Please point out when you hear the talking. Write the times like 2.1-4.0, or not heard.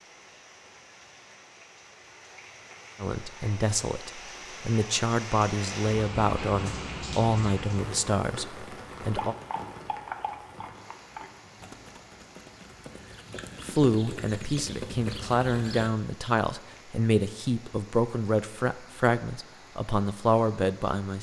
3.0-9.3, 13.6-21.1.